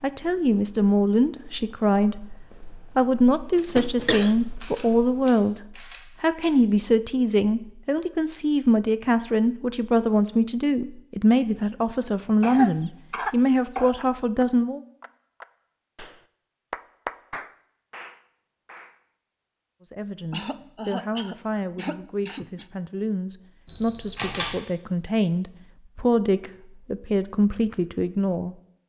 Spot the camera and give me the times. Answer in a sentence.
You can hear the camera from 4.2 to 6.5 s and from 23.6 to 24.6 s.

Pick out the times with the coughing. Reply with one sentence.
The coughing can be heard from 3.5 to 4.3 s, from 12.4 to 13.9 s and from 20.3 to 22.6 s.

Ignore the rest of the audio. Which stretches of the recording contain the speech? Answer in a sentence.
You can hear the speech from 0.0 to 14.8 s and from 19.9 to 28.6 s.